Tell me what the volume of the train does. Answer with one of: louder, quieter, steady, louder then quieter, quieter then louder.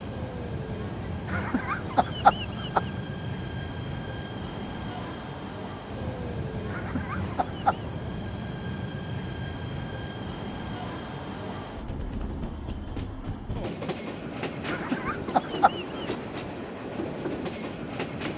steady.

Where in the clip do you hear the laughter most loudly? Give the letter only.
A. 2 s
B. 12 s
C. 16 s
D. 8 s
A.